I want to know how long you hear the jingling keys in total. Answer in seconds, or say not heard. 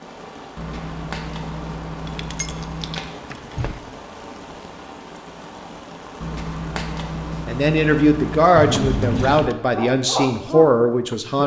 3 s.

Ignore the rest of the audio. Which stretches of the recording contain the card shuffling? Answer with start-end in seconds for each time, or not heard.
0.6-3.1, 6.2-8.6.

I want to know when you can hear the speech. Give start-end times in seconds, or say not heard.
7.5-11.4.